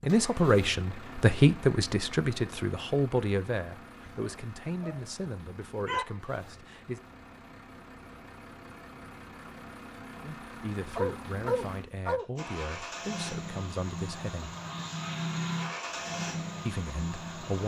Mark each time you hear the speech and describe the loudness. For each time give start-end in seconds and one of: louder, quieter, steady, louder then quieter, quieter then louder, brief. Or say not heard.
0.0-7.0 quieter
10.2-14.6 steady
16.6-17.6 brief.